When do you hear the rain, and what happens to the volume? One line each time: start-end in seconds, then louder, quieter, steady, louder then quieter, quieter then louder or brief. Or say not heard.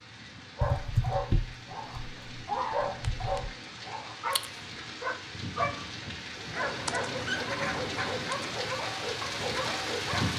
0.0-10.3 louder.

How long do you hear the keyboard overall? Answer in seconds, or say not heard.
5 s.